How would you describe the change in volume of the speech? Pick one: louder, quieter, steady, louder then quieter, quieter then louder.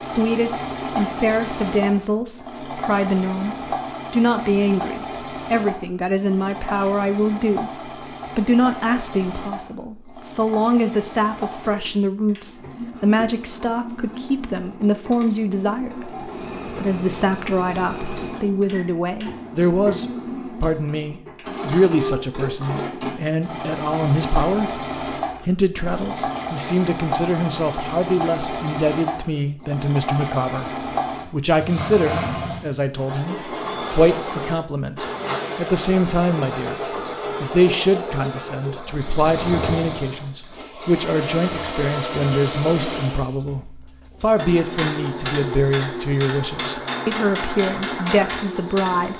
steady.